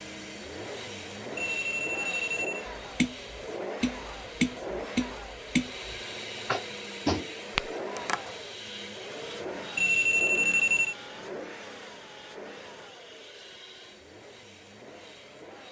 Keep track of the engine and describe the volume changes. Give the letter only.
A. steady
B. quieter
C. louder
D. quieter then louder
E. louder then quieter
B.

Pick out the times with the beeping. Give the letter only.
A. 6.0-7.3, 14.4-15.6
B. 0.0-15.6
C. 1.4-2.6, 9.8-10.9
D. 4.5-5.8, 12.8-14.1
C.